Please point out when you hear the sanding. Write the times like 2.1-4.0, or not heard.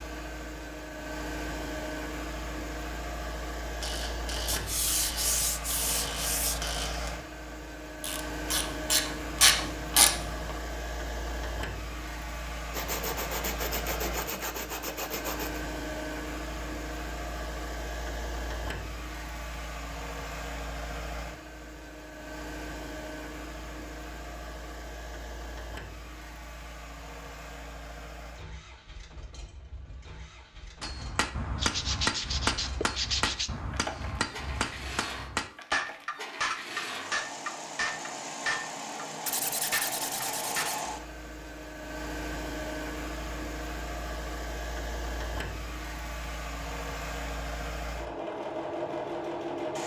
4.5-6.7, 12.7-15.6, 31.6-33.5, 39.2-40.9.